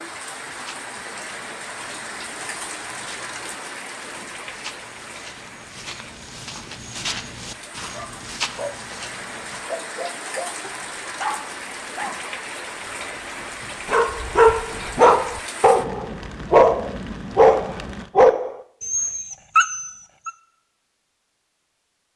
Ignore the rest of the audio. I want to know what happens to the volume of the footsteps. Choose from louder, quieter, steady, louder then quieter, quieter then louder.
louder.